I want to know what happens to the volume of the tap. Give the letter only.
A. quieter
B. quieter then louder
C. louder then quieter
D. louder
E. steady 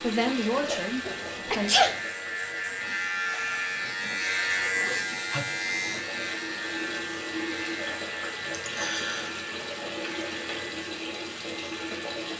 B.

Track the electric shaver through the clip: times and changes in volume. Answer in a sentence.
The electric shaver can be heard from 0.1 to 12.3 s, getting louder then quieter.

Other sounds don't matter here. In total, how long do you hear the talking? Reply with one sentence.
The talking can be heard for 2 seconds in total.